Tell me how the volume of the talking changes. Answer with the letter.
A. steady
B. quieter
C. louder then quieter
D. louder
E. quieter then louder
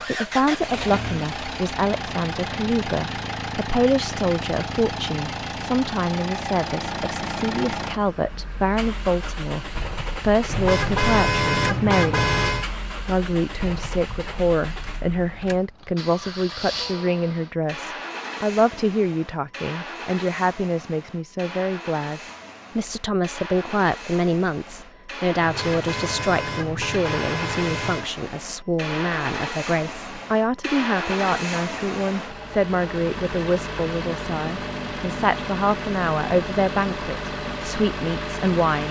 A.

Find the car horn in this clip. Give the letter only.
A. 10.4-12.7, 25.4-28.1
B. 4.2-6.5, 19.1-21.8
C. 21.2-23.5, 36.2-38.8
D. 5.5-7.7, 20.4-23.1
A.